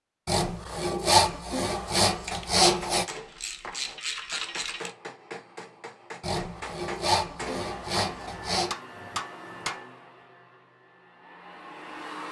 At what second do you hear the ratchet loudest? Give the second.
4 s.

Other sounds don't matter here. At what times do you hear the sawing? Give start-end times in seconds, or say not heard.
0.2-3.0, 6.2-8.8.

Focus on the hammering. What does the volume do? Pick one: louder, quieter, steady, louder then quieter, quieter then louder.
louder.